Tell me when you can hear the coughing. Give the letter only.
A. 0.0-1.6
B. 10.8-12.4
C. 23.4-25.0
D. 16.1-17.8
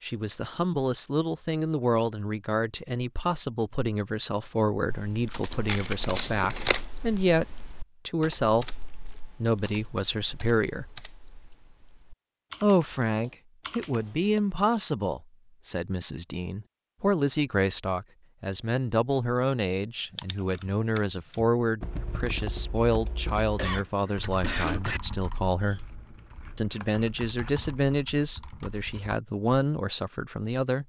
C.